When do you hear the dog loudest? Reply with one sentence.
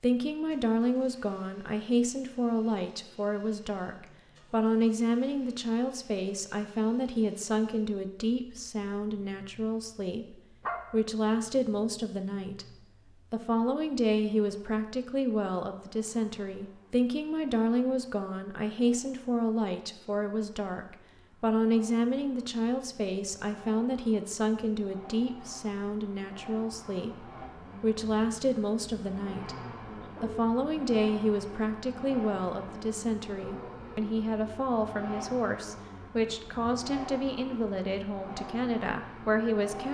The volume of the dog peaks at 11 seconds.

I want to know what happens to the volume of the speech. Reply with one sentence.
The volume of the speech stays about the same.